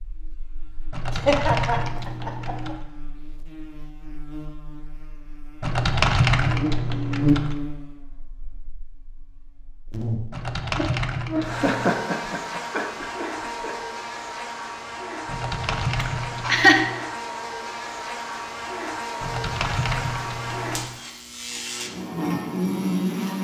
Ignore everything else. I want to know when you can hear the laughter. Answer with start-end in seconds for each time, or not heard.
1.1-2.8, 11.3-13.8, 16.0-16.9.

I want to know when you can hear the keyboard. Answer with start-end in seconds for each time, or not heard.
0.9-2.8, 5.6-7.5, 10.3-11.9, 15.2-16.9, 19.2-20.9.